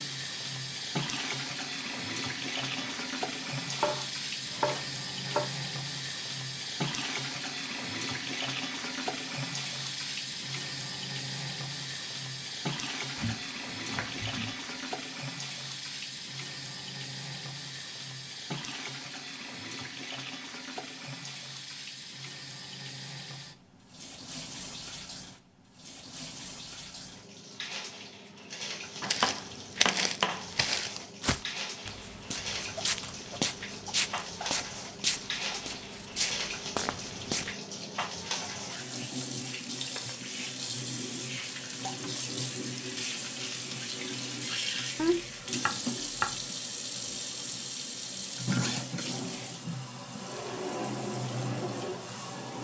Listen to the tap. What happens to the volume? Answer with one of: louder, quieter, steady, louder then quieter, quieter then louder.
quieter then louder.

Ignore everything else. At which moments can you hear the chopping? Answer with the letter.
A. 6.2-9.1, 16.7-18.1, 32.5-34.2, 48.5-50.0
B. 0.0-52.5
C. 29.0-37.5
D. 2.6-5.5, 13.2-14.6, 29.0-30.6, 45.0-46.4
D.